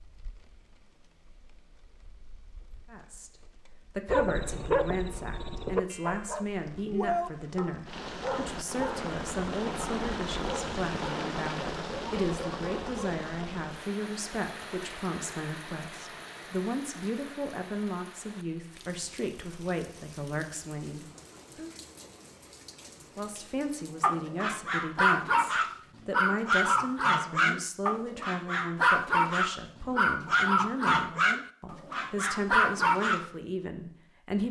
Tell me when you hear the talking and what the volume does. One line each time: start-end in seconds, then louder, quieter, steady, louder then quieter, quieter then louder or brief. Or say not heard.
2.9-21.7 steady
23.1-34.4 steady.